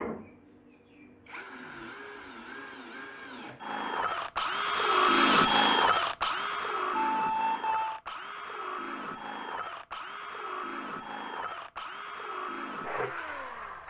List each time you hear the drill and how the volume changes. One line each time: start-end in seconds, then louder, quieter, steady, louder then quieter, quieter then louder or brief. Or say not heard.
0.0-13.8 louder then quieter.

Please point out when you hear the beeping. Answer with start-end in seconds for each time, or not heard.
6.9-8.0.